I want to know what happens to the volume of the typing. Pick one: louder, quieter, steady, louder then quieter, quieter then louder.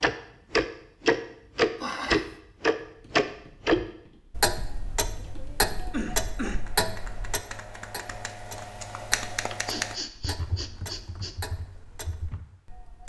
louder then quieter.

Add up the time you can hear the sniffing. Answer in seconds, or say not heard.
3 s.